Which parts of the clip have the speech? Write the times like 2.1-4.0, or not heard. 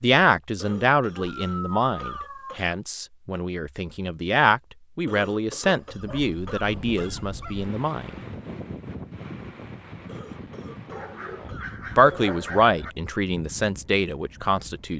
0.0-8.2, 11.4-14.9.